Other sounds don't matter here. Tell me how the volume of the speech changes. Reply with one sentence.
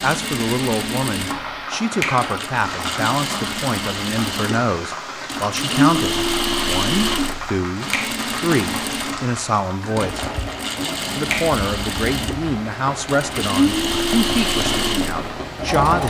The volume of the speech stays about the same.